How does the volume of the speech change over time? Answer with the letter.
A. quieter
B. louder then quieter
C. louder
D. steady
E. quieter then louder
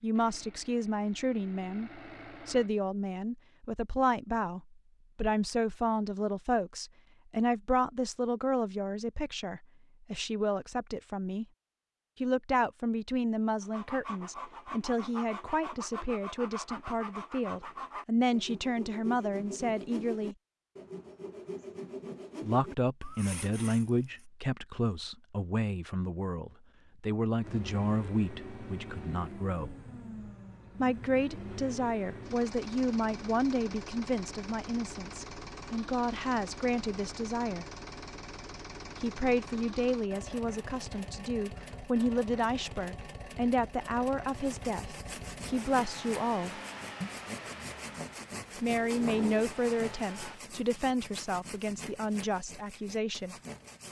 D.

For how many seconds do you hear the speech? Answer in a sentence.
The speech can be heard for 46 seconds in total.